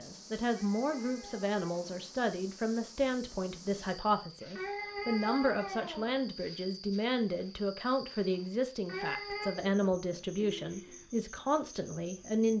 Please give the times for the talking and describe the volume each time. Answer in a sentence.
The talking can be heard from 0.0 to 12.5 s, at a steady volume.